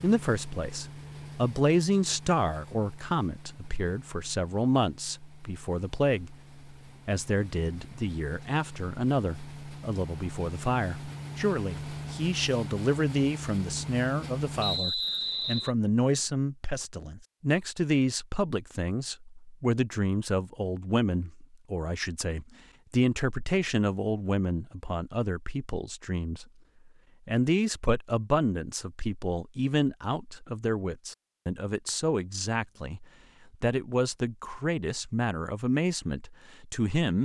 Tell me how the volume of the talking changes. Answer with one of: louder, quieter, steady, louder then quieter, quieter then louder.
steady.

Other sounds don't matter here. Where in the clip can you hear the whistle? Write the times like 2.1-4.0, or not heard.
14.6-15.7.